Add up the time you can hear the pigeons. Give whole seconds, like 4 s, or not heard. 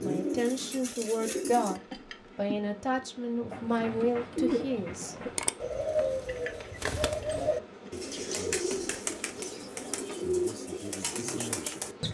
10 s.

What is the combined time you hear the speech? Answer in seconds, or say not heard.
5 s.